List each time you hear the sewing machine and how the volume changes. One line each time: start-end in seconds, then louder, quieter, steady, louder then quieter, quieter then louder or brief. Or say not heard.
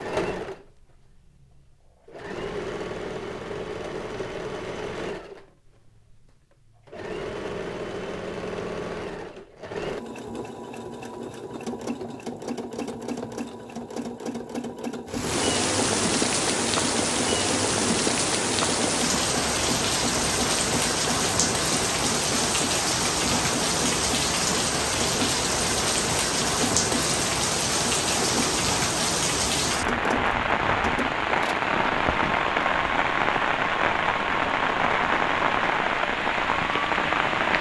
0.0-37.5 steady.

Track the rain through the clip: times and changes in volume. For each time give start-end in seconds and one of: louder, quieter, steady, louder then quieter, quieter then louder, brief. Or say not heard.
15.1-37.5 steady.